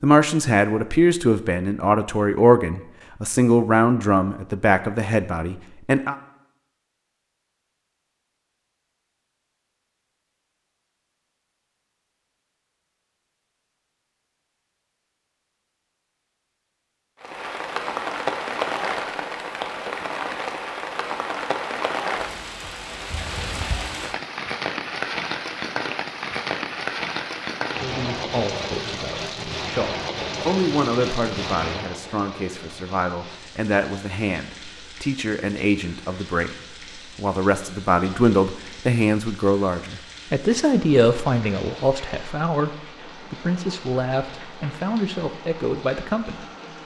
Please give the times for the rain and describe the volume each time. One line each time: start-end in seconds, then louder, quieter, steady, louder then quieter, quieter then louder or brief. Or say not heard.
17.2-46.8 quieter.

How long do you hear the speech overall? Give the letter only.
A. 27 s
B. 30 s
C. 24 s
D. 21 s
C.